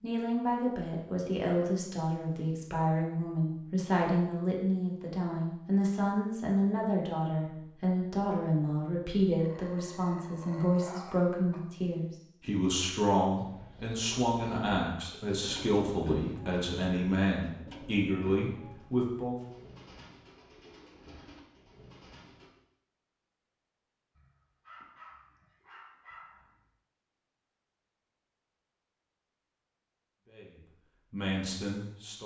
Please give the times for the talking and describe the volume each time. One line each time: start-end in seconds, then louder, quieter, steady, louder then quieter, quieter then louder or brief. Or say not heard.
0.0-19.4 steady
30.2-32.2 brief.